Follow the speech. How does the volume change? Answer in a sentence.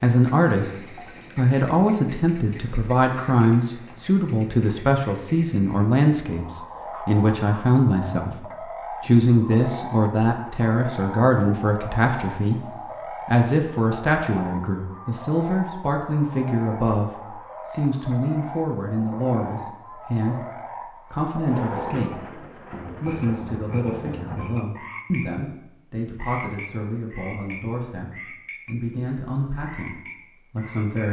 The loudness of the speech goes down.